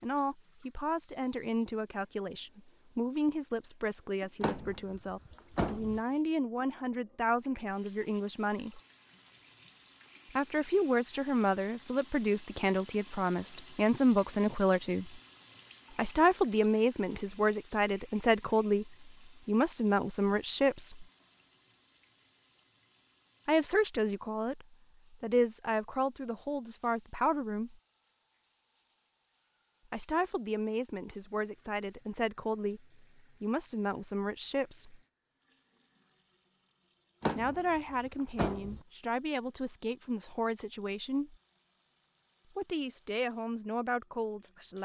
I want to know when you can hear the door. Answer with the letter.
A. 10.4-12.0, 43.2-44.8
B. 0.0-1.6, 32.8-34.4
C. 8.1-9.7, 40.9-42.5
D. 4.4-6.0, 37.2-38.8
D.